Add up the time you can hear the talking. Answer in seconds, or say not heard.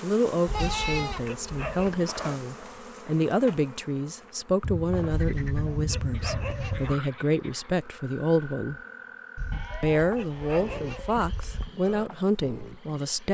12 s.